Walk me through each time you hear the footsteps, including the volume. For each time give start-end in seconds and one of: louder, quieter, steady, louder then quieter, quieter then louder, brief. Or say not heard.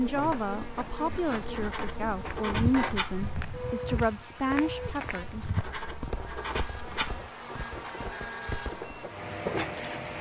2.1-9.8 quieter then louder.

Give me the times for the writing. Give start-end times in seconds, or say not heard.
1.2-3.2, 5.3-7.2.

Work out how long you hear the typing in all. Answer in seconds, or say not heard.
not heard.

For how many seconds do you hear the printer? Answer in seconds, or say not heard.
10 s.